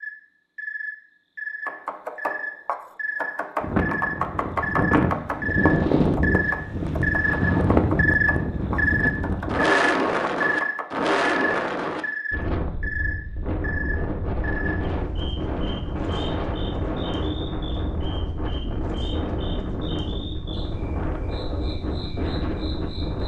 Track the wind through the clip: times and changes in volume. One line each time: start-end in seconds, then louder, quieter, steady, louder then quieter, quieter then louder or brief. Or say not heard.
3.6-23.2 quieter.